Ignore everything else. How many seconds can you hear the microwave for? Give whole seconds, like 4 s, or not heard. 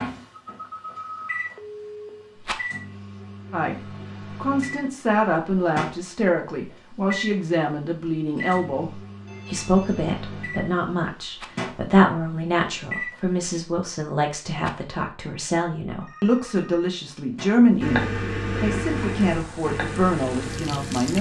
17 s.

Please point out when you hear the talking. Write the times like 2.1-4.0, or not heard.
3.5-21.1.